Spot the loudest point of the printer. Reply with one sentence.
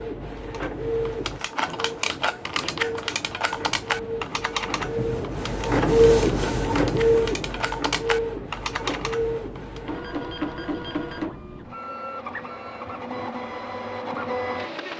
The volume of the printer peaks at 6 seconds.